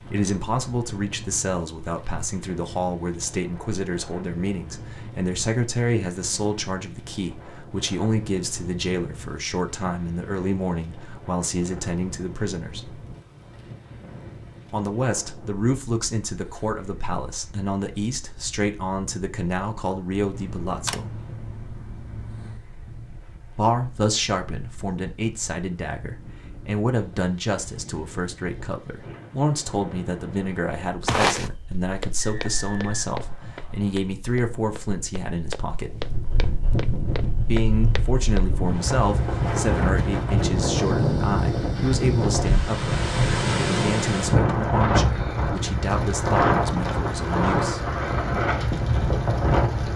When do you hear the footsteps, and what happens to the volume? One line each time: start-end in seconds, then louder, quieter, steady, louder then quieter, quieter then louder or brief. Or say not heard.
31.1-38.5 quieter then louder.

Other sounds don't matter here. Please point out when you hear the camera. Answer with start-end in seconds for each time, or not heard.
20.3-22.6.